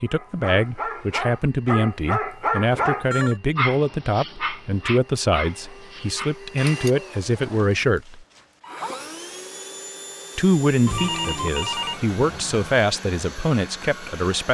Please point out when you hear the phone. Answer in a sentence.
You can hear the phone from 2.7 to 3.4 s and from 10.8 to 12.8 s.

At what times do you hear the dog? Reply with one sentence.
You can hear the dog from 0.1 to 9.2 s.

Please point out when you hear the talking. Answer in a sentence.
You can hear the talking from 0.0 to 8.2 s and from 10.3 to 14.4 s.